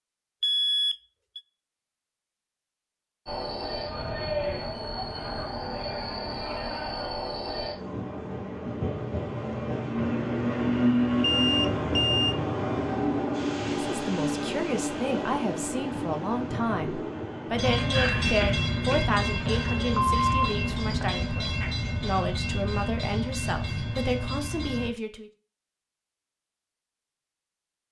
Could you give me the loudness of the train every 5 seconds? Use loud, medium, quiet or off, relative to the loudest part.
medium, medium, loud, loud, medium, off.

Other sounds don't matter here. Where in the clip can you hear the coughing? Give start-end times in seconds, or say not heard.
18.4-19.1.